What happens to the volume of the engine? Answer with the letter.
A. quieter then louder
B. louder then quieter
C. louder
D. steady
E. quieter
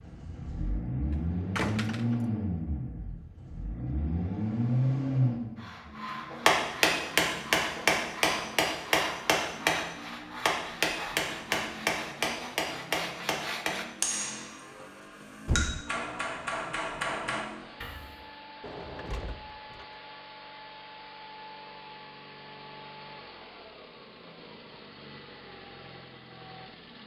E.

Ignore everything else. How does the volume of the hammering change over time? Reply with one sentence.
The loudness of the hammering goes down.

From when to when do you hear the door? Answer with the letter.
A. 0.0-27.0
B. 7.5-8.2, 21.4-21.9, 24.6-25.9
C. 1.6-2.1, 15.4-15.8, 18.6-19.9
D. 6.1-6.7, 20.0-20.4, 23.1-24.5
C.